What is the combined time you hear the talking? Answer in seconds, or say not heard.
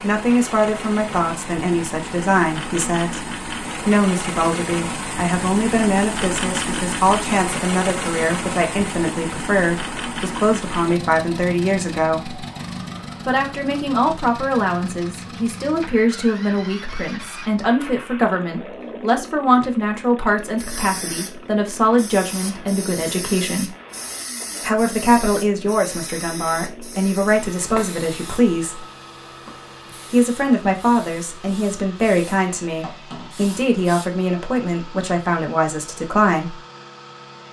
33 s.